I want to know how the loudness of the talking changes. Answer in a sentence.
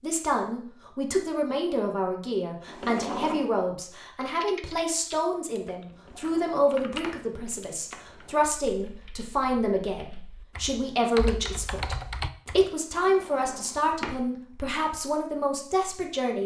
The loudness of the talking stays about the same.